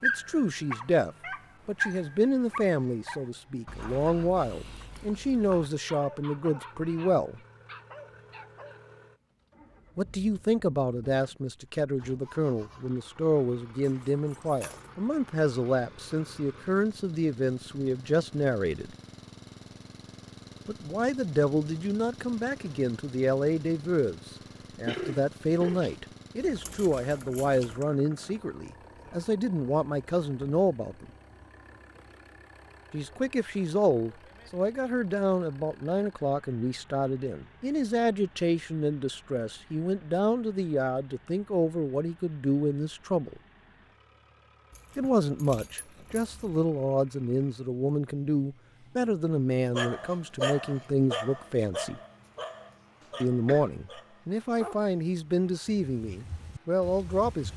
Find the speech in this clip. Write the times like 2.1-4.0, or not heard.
0.0-7.4, 9.9-18.9, 20.6-31.1, 32.9-43.4, 45.0-52.0, 53.2-57.5.